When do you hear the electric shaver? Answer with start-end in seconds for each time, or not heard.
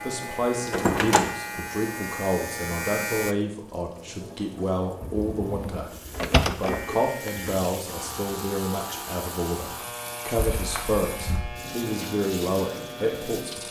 0.0-3.4, 6.7-13.6.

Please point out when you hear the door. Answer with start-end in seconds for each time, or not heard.
0.7-1.3, 5.0-6.8, 10.3-11.4.